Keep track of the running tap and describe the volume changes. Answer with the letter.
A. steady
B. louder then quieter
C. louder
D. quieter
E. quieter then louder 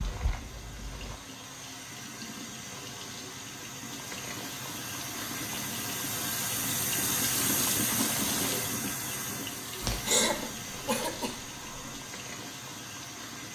B.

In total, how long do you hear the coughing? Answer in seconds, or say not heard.
2 s.